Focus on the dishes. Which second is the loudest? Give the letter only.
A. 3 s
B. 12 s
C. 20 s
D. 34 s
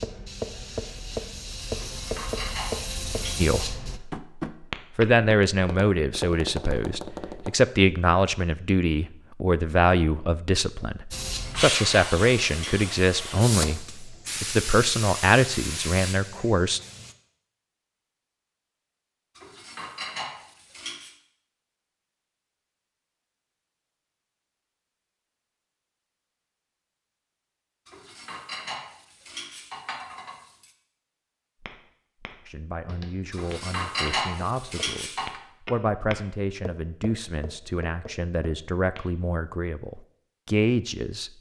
D.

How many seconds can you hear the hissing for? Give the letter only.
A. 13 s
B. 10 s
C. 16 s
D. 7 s
B.